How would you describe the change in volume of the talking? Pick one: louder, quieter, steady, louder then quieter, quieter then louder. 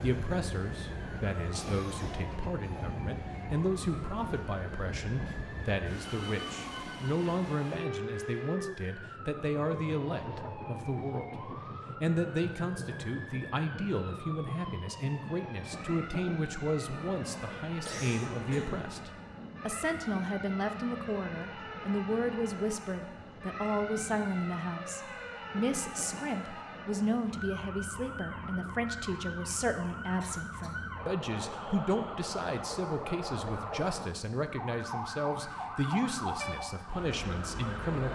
steady.